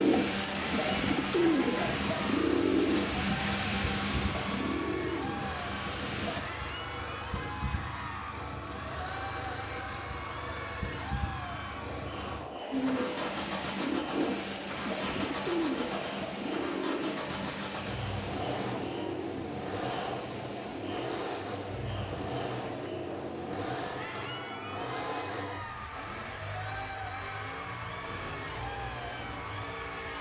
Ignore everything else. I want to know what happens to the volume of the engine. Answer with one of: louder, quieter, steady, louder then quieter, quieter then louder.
steady.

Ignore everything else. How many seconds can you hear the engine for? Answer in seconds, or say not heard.
30 s.